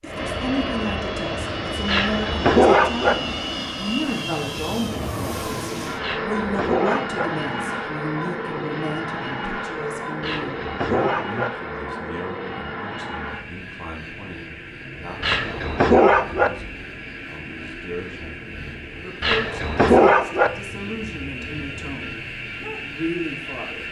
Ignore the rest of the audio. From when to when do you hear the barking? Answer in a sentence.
You can hear the barking from 1.9 to 3.1 s, from 6.0 to 7.3 s, from 10.2 to 11.5 s, from 15.2 to 16.5 s and from 19.2 to 20.5 s.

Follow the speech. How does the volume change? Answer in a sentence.
The loudness of the speech goes down, then up.